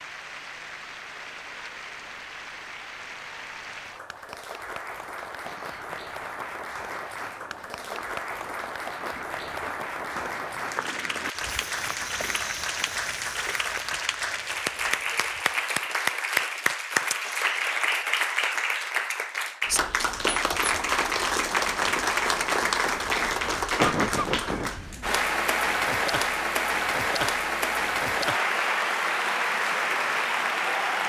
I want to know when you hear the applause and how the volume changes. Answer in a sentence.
You can hear the applause from 0.0 to 31.0 s, getting louder.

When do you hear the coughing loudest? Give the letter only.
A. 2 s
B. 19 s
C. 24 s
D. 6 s
C.